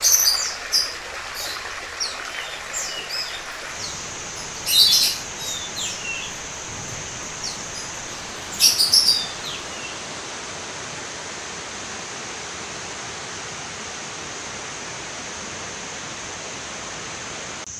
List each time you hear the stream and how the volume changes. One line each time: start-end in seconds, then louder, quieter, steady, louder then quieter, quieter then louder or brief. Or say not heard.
0.0-17.7 steady.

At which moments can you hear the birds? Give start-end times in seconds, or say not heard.
0.0-9.9.